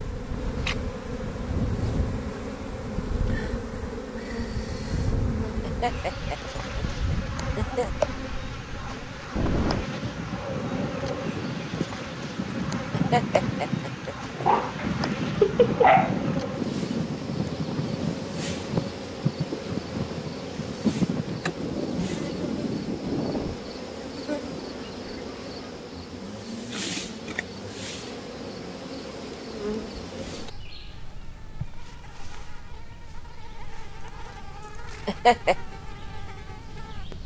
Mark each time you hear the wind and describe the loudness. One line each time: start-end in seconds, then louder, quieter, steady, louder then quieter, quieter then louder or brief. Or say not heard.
0.0-23.6 louder.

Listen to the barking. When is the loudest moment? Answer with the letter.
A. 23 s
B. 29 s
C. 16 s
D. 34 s
C.